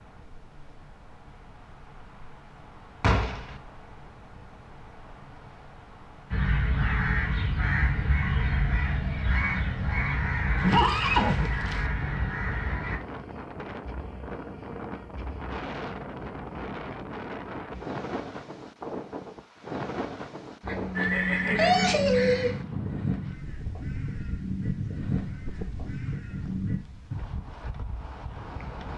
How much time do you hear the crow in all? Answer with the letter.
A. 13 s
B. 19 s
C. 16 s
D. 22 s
A.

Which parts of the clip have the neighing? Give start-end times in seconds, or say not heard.
3.0-3.6, 10.6-11.8, 20.9-22.6.